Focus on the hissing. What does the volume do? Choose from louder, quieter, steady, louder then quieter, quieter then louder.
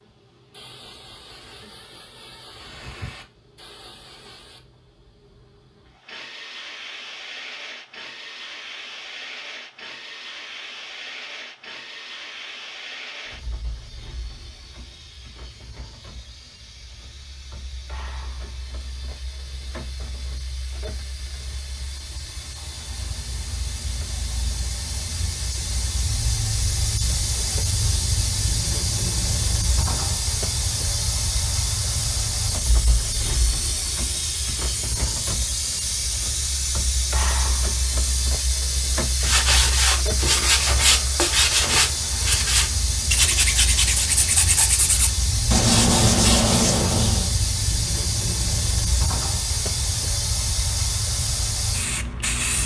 louder.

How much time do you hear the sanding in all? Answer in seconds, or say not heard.
8 s.